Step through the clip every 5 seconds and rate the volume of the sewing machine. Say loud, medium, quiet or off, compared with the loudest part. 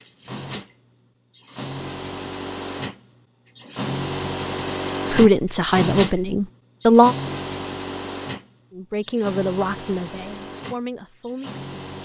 loud, loud, medium.